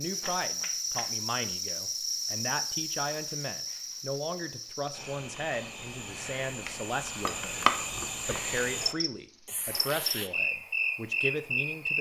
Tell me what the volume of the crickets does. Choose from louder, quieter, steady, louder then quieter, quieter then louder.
quieter then louder.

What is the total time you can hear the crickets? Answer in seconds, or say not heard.
12 s.